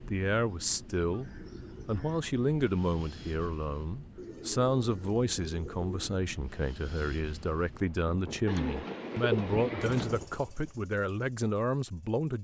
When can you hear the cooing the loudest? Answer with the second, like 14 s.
9 s.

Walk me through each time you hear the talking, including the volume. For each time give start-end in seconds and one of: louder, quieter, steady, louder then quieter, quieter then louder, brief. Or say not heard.
0.1-12.4 steady.